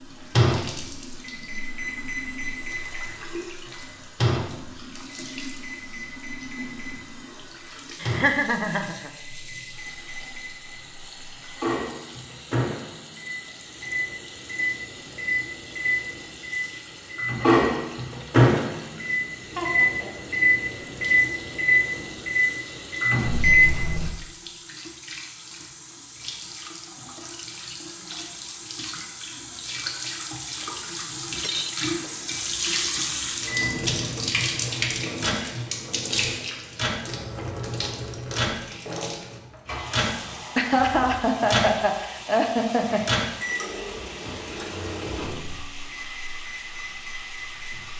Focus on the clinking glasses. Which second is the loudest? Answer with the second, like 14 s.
32 s.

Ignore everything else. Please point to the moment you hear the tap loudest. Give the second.
34 s.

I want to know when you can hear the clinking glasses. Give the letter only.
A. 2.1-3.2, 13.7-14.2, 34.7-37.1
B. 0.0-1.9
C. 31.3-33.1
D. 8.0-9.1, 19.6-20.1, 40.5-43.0
C.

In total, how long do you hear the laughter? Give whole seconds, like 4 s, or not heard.
4 s.